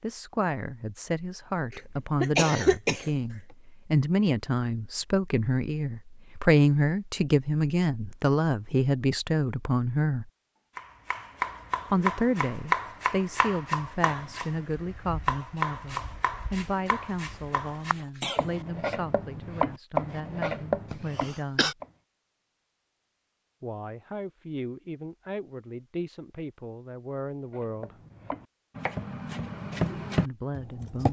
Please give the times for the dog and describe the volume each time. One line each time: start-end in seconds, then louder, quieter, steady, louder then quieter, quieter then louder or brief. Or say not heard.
not heard.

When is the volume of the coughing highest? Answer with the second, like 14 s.
3 s.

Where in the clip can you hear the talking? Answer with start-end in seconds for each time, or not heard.
0.0-10.3, 11.9-21.8, 23.6-27.9, 30.2-31.0.